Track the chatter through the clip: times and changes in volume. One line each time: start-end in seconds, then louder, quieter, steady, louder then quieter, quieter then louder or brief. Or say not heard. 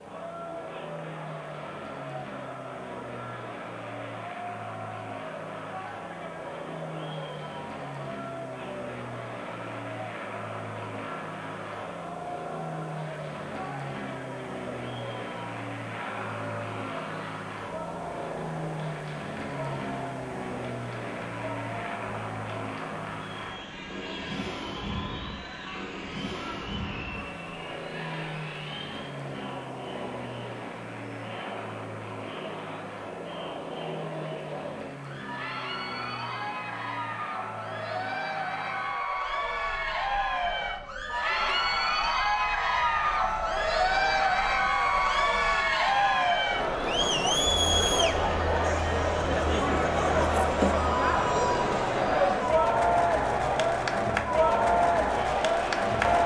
0.0-56.2 louder.